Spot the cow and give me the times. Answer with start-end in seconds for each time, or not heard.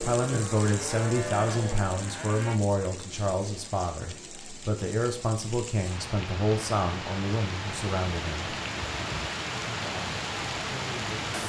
0.1-2.6.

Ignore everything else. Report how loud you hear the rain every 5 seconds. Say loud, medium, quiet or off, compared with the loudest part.
medium, loud, loud.